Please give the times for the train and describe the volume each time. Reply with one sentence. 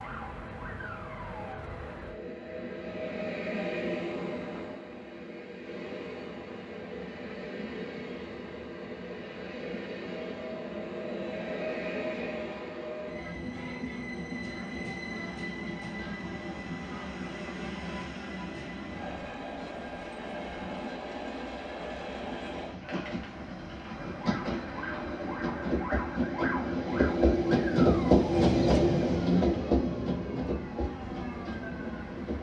You can hear the train from 0.0 to 32.3 s, getting louder.